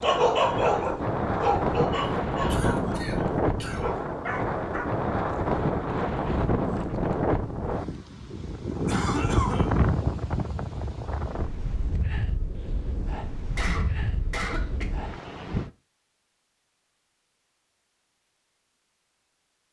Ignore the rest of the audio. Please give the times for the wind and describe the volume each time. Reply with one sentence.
The wind can be heard from 0.0 to 15.7 s, getting quieter.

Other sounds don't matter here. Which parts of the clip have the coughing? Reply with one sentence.
You can hear the coughing from 2.5 to 3.9 s, from 8.8 to 9.7 s and from 13.6 to 14.8 s.